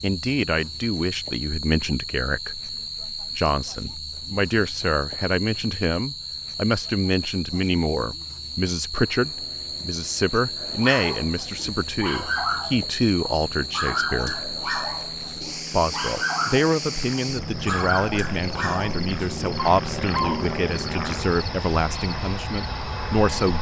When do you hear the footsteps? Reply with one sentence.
The footsteps can't be heard in this clip.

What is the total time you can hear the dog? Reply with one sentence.
The dog can be heard for 10 seconds in total.